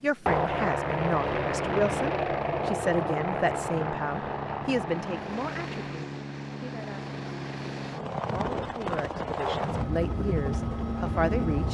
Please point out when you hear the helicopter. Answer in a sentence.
You can hear the helicopter from 0.0 to 11.6 s.